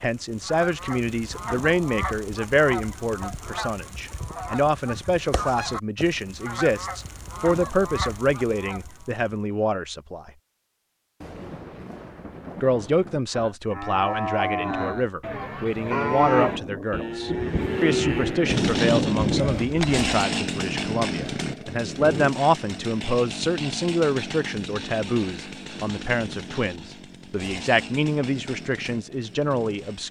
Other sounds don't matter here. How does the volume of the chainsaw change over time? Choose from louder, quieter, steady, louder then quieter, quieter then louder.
quieter.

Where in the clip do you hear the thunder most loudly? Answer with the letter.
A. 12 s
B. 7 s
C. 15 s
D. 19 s
D.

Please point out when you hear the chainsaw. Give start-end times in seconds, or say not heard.
18.4-30.0.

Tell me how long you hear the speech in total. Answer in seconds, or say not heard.
28 s.